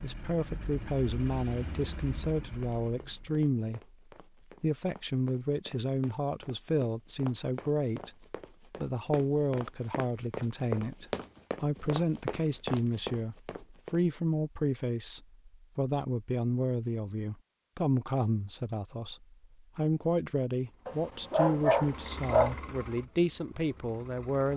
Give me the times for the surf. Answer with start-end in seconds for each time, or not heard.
not heard.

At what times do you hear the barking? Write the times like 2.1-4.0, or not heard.
20.9-22.6.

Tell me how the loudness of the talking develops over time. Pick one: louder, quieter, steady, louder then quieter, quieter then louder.
steady.